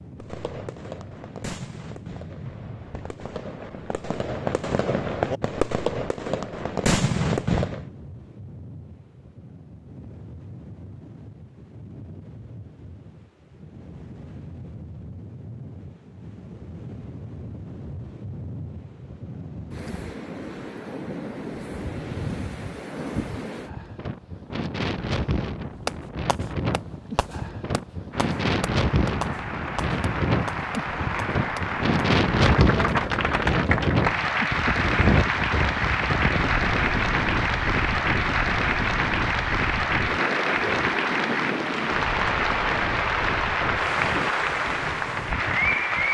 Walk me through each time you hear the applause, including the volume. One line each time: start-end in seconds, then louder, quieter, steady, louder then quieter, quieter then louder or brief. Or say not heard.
28.1-46.0 louder.